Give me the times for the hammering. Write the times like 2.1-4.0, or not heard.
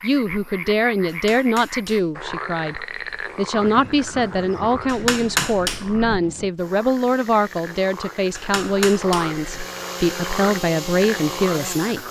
1.1-2.1, 4.8-6.2, 8.3-9.4.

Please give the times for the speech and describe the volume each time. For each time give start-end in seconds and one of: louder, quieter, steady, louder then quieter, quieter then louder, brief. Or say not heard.
0.0-12.0 steady.